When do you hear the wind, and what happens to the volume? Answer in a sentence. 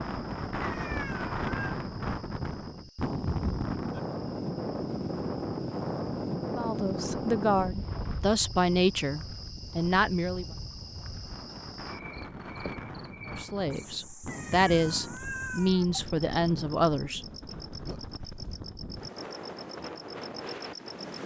You can hear the wind from 0.0 to 21.2 s, getting quieter.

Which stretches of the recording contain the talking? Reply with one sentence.
You can hear the talking from 6.5 to 10.4 s and from 13.2 to 17.2 s.